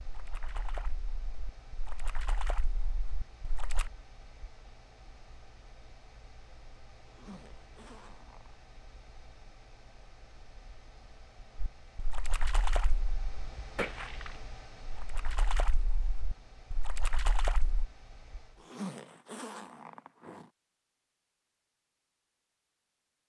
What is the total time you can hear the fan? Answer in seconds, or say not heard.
19 s.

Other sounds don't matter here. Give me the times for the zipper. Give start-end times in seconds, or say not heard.
7.0-8.6, 18.6-20.5.